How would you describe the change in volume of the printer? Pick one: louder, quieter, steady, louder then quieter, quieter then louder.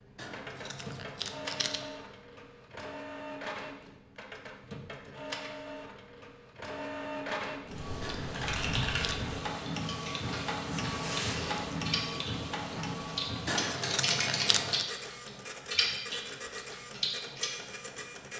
louder then quieter.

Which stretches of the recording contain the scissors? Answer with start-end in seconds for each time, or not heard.
0.1-1.9, 8.0-9.2, 13.4-14.9.